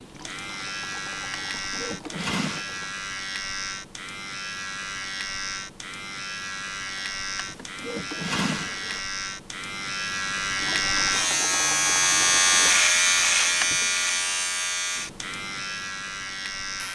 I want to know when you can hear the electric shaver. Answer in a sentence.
You can hear the electric shaver from 0.0 to 16.9 s.